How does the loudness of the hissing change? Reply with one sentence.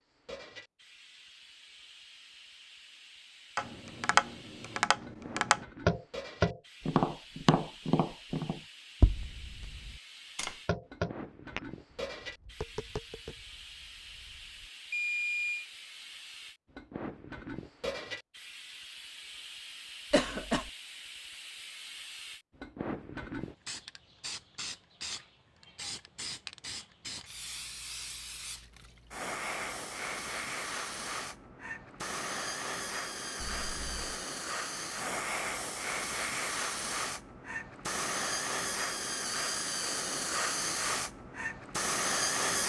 The volume of the hissing goes up.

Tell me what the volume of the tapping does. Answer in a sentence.
The volume of the tapping goes down.